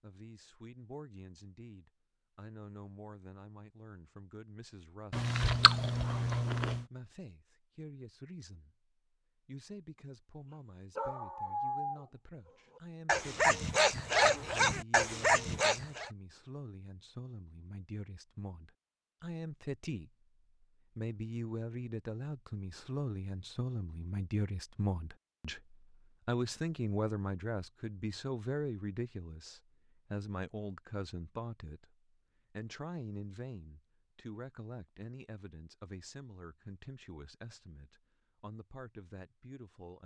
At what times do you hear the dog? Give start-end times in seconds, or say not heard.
10.9-16.1.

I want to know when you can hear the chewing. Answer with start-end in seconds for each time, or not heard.
5.1-6.8.